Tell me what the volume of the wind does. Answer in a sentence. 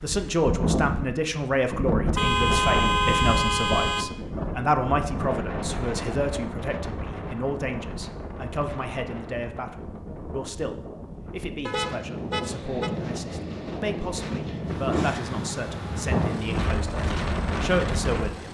The volume of the wind goes down, then up.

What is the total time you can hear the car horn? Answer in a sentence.
You can hear the car horn for 3 seconds altogether.